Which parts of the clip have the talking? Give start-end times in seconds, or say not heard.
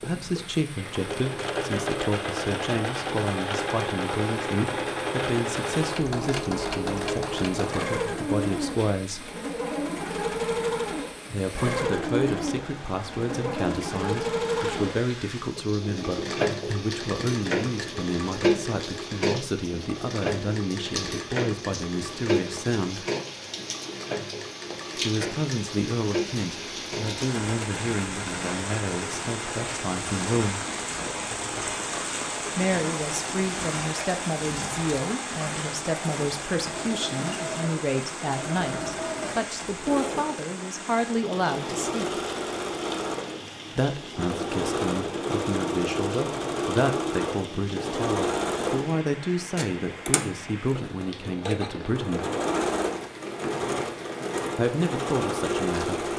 0.0-9.3, 11.3-23.1, 24.9-30.6, 32.5-42.2, 43.8-52.2, 54.5-56.0.